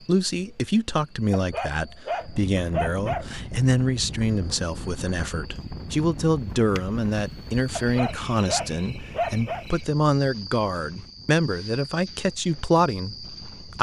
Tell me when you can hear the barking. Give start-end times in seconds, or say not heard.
1.3-3.2, 7.8-9.7.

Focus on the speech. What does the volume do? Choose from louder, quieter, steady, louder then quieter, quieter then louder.
steady.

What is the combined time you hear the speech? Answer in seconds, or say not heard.
14 s.